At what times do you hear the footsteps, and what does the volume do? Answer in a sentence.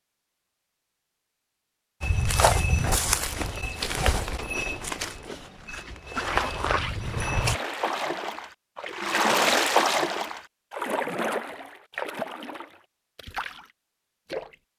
The footsteps can be heard from 2.0 to 7.6 s, getting quieter then louder.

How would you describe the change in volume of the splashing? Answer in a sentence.
The loudness of the splashing goes up, then down.